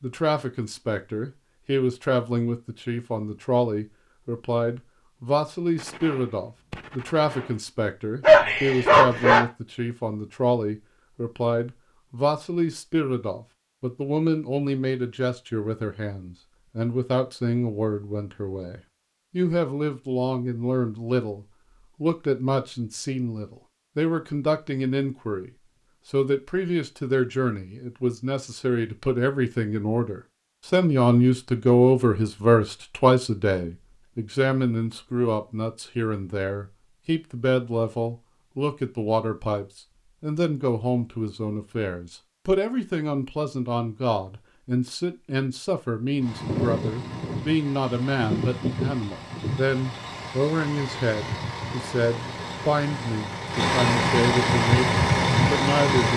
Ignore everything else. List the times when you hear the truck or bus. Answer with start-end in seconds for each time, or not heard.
46.2-56.1.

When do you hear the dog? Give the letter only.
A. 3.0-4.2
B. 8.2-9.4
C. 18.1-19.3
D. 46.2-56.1
B.